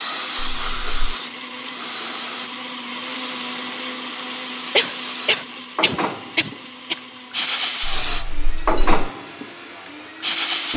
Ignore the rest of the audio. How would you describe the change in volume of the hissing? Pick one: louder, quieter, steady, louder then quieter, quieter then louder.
quieter then louder.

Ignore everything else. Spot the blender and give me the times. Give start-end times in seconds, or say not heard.
0.0-10.7.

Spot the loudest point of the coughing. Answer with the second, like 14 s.
5 s.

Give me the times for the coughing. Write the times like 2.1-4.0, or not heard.
4.8-7.0.